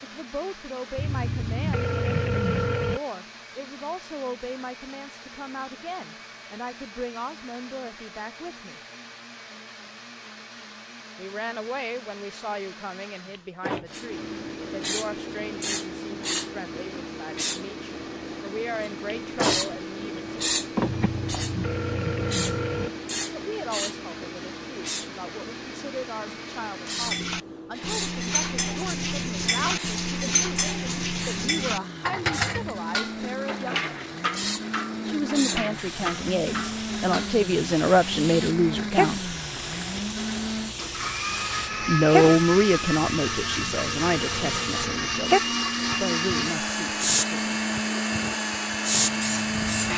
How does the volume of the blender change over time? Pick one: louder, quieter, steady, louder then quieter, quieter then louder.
louder.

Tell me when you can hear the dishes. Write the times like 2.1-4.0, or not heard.
26.9-37.4.